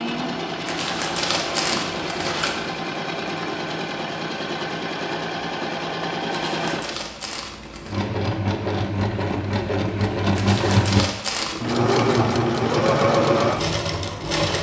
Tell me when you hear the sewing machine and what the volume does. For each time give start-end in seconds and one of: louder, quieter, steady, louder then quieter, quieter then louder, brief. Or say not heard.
0.0-14.5 louder.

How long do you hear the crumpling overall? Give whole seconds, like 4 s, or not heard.
5 s.